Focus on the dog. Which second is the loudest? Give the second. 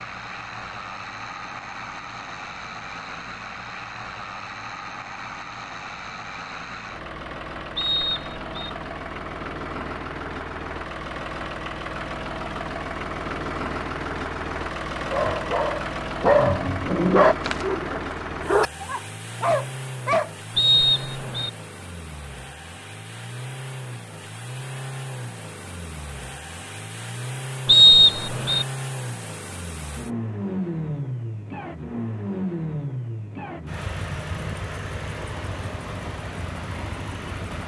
17 s.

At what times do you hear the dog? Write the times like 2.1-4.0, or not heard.
15.1-20.3.